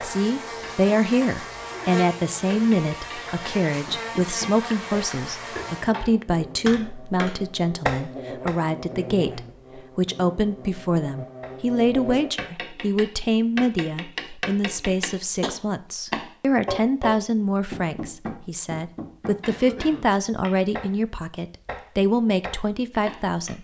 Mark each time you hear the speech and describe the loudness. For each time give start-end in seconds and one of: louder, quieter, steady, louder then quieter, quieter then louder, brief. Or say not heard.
0.0-23.5 steady.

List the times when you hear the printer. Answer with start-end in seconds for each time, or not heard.
not heard.